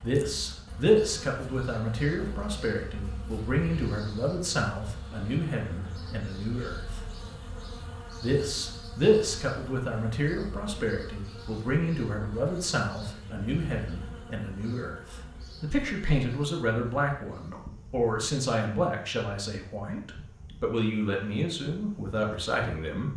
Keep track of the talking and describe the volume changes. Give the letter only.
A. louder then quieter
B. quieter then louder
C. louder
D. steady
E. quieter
D.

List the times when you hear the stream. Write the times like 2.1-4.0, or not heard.
not heard.